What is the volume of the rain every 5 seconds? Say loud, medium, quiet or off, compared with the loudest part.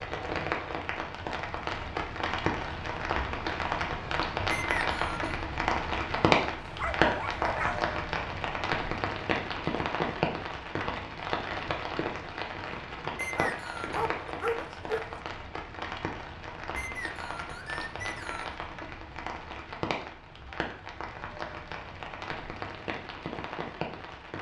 loud, loud, medium, medium, medium.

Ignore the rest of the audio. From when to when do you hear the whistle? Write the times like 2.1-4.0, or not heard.
4.5-5.2, 13.2-14.0, 16.8-18.6.